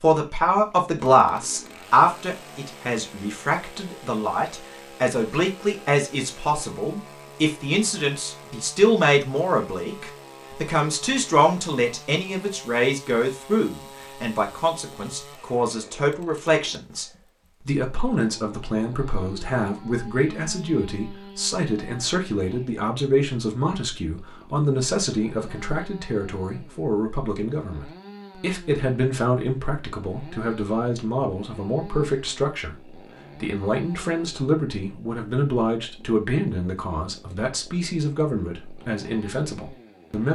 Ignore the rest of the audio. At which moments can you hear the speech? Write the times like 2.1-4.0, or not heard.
0.0-40.2.